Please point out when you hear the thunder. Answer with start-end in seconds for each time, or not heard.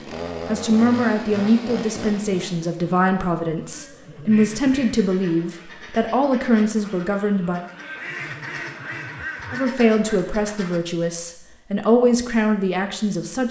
not heard.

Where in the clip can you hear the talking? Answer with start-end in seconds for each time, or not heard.
0.5-7.6, 9.5-13.4.